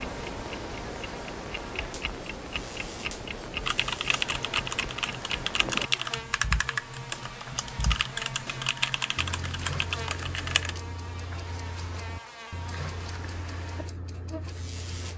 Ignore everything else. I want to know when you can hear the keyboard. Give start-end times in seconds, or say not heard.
3.6-10.8.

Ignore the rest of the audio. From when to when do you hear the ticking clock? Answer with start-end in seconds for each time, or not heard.
0.0-15.1.